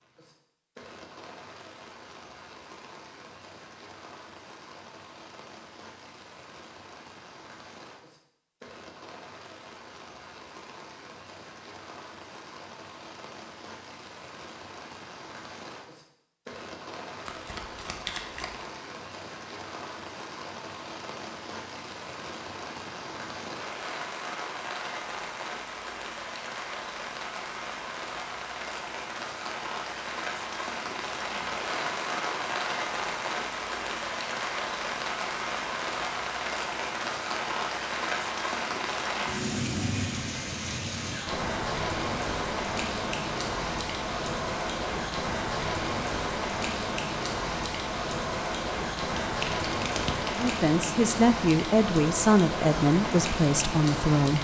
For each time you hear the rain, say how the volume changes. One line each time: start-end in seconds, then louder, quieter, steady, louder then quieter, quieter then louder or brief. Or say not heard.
0.0-54.3 louder.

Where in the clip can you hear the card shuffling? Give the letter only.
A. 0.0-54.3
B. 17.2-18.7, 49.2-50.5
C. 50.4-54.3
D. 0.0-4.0
B.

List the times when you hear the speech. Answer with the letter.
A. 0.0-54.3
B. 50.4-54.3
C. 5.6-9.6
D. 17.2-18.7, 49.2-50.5
B.